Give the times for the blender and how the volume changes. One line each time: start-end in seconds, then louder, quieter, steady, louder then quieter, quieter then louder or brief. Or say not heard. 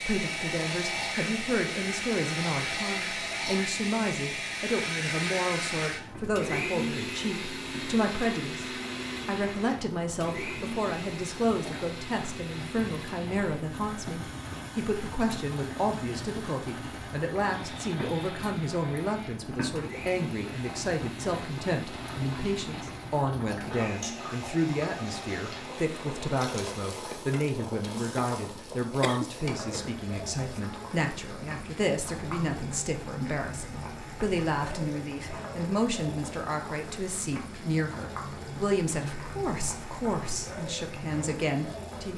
0.0-27.6 quieter.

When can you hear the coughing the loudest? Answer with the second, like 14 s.
29 s.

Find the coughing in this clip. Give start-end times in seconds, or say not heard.
29.0-30.6.